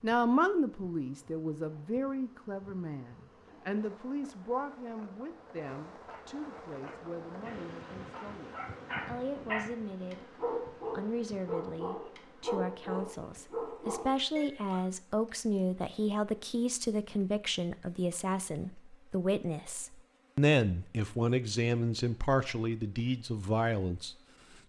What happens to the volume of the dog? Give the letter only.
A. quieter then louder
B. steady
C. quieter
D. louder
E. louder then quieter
D.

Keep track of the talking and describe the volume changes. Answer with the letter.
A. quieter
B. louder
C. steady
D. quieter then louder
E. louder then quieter
D.